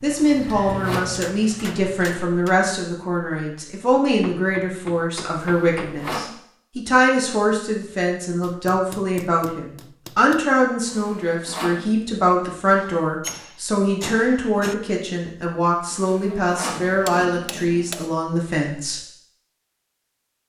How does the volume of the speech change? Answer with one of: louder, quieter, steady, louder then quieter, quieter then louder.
steady.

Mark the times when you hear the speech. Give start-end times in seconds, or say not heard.
0.0-19.0.